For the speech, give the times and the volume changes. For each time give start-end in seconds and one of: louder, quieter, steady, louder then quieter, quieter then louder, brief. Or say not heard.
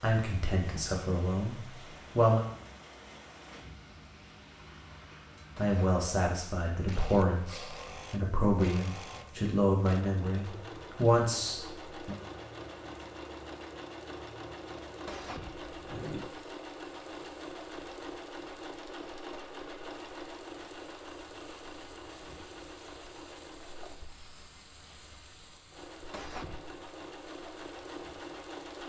0.0-2.4 brief
5.5-12.2 louder.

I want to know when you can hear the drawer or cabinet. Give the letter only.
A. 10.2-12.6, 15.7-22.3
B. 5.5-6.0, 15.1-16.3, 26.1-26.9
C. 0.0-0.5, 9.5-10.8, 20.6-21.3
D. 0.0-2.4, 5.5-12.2
B.